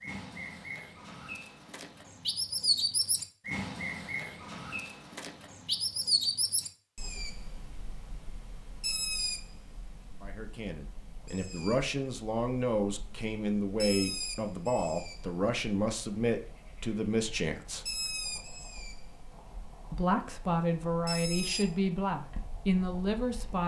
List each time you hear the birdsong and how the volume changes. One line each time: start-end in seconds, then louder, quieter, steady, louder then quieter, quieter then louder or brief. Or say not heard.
0.0-23.6 quieter.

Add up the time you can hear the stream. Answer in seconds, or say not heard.
not heard.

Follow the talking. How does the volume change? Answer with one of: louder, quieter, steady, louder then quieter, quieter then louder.
steady.